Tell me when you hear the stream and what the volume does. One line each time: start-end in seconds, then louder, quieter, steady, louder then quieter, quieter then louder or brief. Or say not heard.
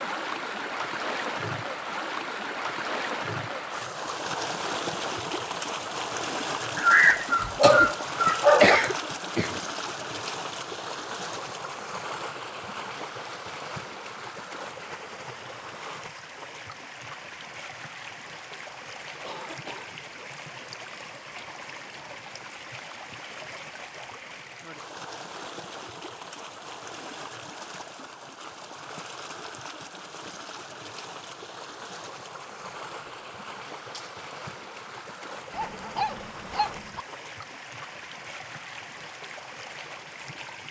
0.0-40.6 quieter.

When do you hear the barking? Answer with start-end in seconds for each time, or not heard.
6.8-8.8, 35.5-37.0.